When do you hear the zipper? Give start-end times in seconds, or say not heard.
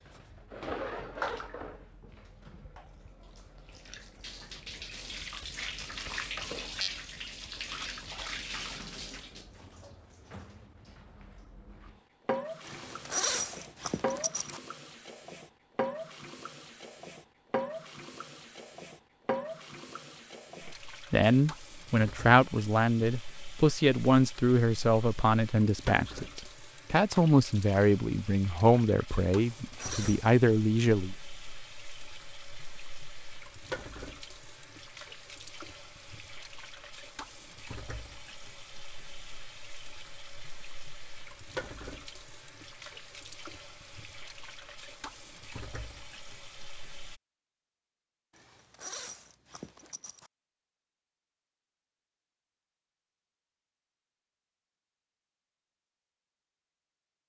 12.7-14.6, 29.5-30.4, 48.4-50.3.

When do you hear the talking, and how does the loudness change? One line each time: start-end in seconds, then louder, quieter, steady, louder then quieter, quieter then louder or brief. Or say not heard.
21.1-31.1 steady.